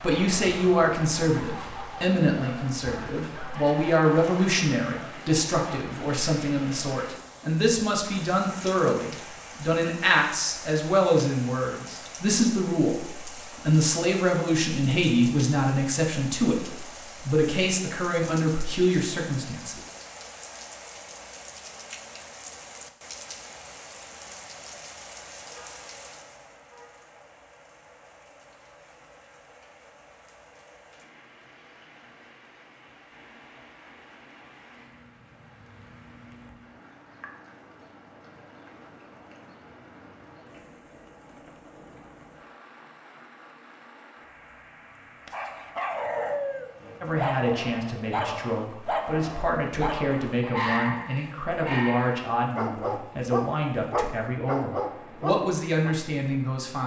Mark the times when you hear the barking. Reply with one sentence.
You can hear the barking from 0.0 to 6.0 s and from 45.2 to 56.0 s.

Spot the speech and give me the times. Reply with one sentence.
The speech can be heard from 0.0 to 19.8 s and from 47.0 to 56.8 s.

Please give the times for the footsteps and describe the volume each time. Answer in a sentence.
You can't hear the footsteps here.